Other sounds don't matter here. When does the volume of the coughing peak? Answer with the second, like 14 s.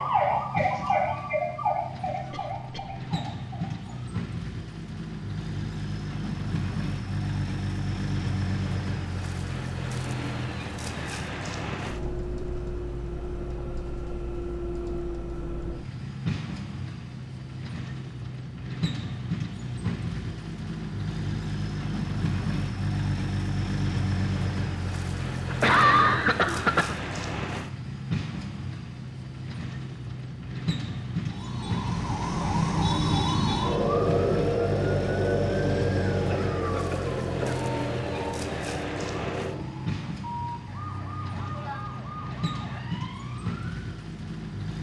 26 s.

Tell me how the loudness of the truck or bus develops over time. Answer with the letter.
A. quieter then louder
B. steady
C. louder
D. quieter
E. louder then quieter
B.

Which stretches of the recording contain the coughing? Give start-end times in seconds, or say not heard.
2.3-3.0, 25.5-26.9, 36.2-37.6.